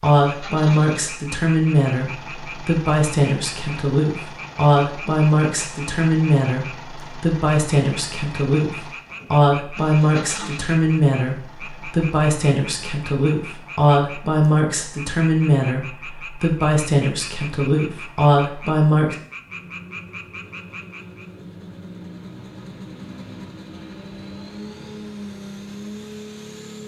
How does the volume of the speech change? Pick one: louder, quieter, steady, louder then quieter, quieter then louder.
steady.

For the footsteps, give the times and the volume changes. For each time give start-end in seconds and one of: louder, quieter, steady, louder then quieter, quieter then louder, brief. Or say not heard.
not heard.